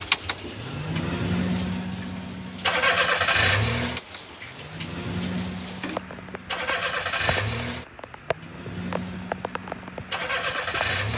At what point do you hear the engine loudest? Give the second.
3 s.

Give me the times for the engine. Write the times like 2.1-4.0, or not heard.
0.0-11.1.